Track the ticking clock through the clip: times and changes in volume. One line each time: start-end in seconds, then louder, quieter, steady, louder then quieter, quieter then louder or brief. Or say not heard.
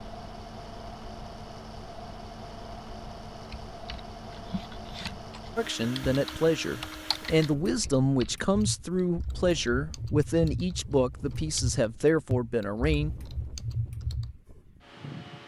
not heard.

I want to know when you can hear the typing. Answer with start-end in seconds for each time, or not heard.
3.3-14.3.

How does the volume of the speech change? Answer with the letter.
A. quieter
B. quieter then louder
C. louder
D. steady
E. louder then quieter
D.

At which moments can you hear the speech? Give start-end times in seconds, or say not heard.
5.5-13.1.